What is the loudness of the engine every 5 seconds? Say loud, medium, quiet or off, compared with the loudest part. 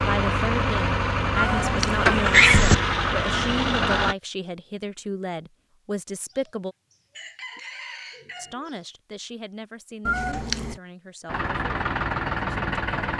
loud, off, loud.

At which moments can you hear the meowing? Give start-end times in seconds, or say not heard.
1.4-2.8, 10.1-10.8.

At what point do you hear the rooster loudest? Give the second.
8 s.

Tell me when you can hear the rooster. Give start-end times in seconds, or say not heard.
6.2-8.8.